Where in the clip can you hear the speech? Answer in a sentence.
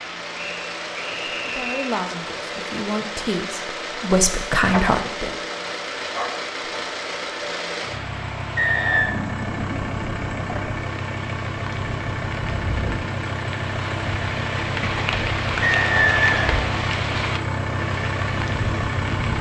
The speech can be heard from 1.4 to 5.3 s.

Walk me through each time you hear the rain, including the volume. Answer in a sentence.
You can hear the rain from 0.0 to 19.3 s, getting louder.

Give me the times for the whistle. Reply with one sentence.
The whistle can be heard from 0.3 to 1.9 s, from 8.6 to 9.2 s and from 15.6 to 16.6 s.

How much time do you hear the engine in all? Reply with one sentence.
You can hear the engine for 19 seconds altogether.